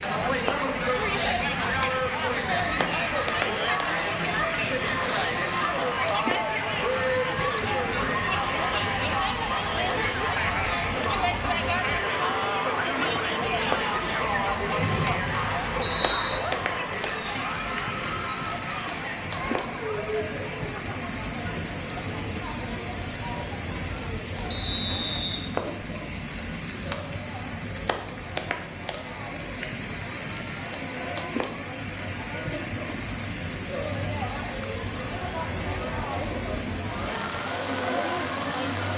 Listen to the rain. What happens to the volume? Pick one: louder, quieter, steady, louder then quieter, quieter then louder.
steady.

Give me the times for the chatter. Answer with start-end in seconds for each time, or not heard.
0.0-38.9.